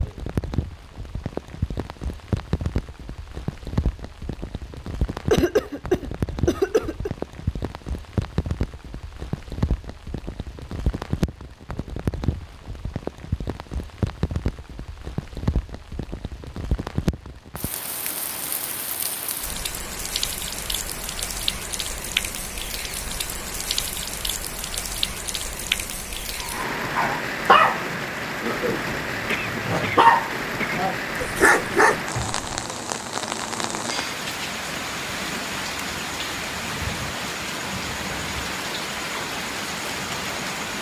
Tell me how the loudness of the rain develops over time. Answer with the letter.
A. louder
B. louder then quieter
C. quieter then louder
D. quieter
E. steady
E.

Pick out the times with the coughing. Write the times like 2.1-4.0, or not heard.
5.3-7.1, 29.2-30.9.